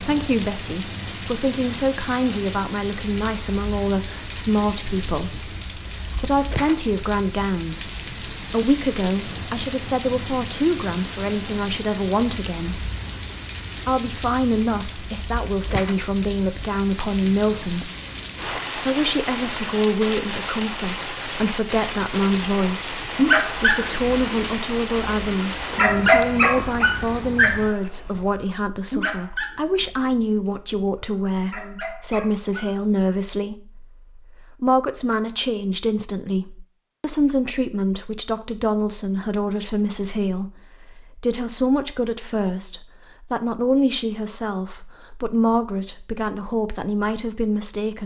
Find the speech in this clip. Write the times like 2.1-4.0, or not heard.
0.0-12.8, 13.8-17.9, 18.8-48.0.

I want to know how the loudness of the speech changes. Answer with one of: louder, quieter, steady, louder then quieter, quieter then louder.
steady.